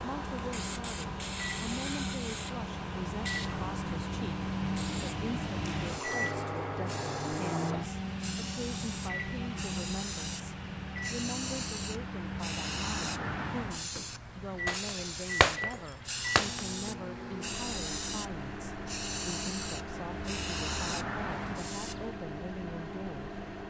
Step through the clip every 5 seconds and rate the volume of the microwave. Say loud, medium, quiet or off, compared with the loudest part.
loud, loud, medium, medium, medium.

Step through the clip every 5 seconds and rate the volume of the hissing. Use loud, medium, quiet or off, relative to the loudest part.
loud, medium, loud, loud, loud.